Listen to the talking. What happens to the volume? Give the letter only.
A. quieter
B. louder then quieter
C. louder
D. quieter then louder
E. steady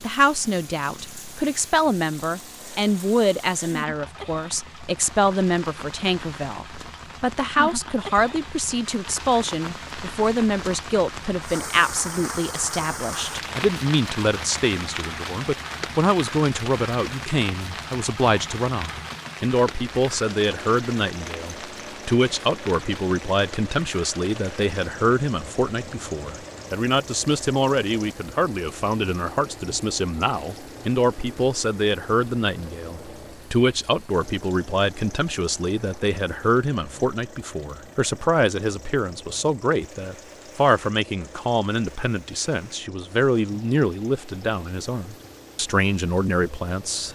E.